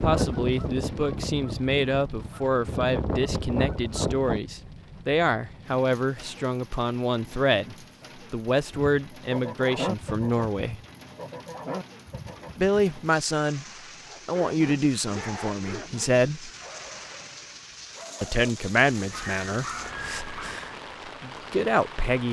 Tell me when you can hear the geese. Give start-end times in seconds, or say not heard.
0.0-4.4, 8.7-12.8.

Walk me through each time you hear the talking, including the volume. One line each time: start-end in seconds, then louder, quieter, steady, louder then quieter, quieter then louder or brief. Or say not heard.
0.0-10.8 steady
12.6-13.7 brief
14.2-16.5 brief
18.2-22.2 quieter then louder.